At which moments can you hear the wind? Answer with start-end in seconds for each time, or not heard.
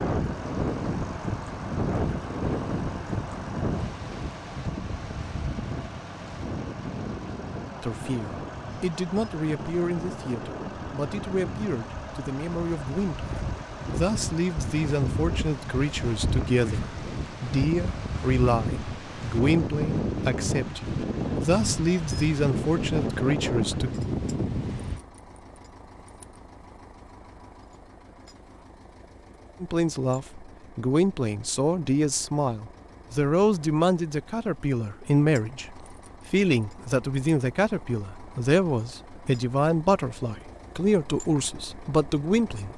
0.0-25.0.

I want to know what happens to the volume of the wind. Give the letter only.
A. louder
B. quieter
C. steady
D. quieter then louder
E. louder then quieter
D.